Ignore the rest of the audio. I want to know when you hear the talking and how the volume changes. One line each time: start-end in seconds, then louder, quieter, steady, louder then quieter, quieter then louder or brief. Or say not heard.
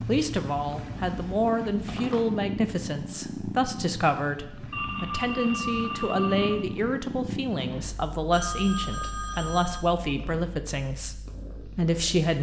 0.1-12.3 steady.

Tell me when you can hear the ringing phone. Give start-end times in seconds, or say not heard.
0.6-2.5, 4.7-6.6, 8.3-9.8.